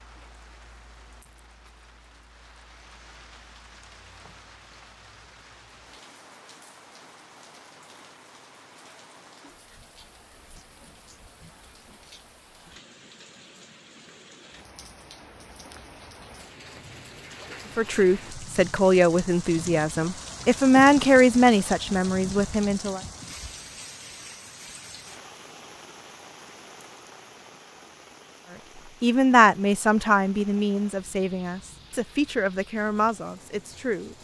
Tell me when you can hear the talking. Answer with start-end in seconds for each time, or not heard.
17.8-23.0, 28.5-34.1.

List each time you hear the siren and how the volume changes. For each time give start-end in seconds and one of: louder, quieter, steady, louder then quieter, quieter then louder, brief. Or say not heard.
not heard.